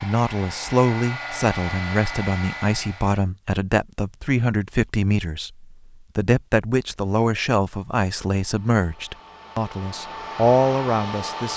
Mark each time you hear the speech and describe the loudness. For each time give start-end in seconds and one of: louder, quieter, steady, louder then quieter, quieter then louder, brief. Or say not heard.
0.0-11.5 steady.